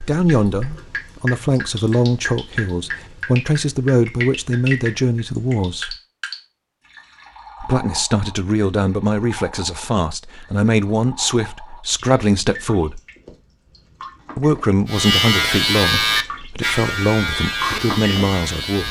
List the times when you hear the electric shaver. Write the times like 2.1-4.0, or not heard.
14.8-18.8.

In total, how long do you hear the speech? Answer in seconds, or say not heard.
16 s.